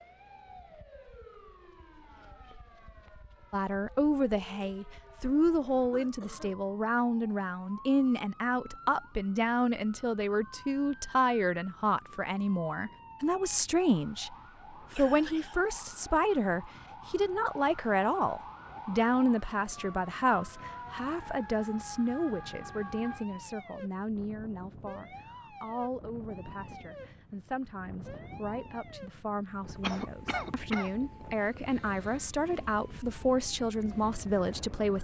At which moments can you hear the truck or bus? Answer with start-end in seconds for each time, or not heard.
not heard.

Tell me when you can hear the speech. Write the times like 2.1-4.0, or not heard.
3.5-34.9.